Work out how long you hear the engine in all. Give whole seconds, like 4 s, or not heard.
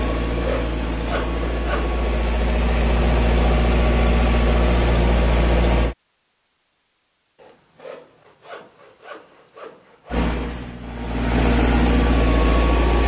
9 s.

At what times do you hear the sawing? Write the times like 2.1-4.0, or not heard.
0.2-1.9, 7.3-10.3.